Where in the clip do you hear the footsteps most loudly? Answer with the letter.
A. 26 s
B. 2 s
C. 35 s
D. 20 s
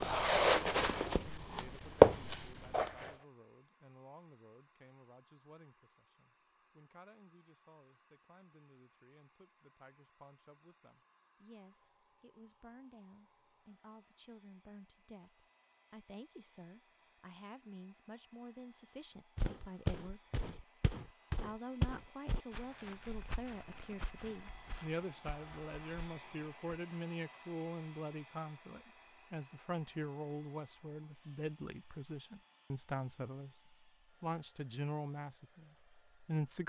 B.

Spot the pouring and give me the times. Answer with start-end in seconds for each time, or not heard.
not heard.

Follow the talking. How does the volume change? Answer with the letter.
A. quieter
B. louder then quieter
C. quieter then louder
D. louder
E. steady
D.